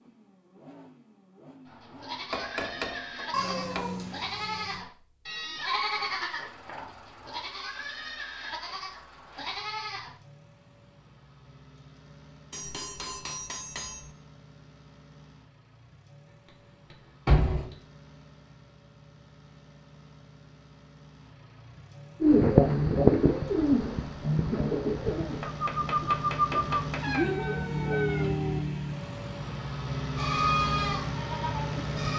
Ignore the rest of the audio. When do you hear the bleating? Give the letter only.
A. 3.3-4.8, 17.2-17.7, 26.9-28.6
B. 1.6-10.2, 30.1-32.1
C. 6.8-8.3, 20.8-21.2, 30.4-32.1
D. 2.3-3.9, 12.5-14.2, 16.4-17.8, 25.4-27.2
B.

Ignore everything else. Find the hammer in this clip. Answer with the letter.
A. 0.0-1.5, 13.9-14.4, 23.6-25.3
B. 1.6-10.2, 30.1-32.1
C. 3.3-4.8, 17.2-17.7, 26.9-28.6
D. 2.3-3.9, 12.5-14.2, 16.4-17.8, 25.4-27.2
D.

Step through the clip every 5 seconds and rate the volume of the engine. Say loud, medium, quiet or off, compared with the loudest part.
quiet, quiet, quiet, quiet, quiet, loud, loud.